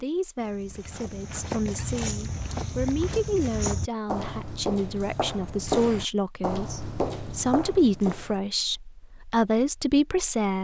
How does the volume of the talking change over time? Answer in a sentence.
The loudness of the talking goes up.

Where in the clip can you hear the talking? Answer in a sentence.
The talking can be heard from 0.0 to 10.5 s.